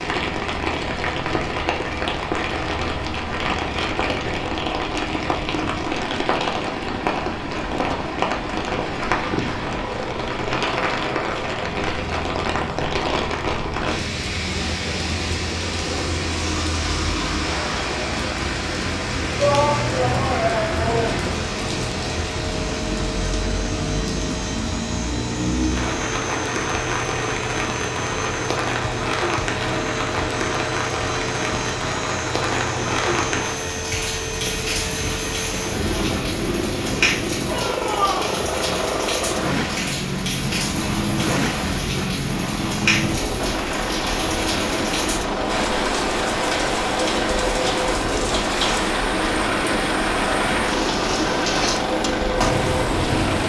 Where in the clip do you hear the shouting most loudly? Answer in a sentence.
The loudest moment of the shouting is at 20 seconds.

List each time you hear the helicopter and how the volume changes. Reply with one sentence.
The helicopter can be heard from 0.0 to 53.4 s, getting louder.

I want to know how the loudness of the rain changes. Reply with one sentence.
The loudness of the rain stays about the same.